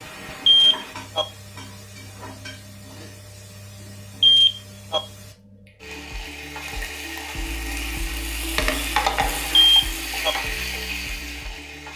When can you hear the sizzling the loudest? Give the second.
9 s.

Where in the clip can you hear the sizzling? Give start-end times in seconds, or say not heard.
0.0-11.9.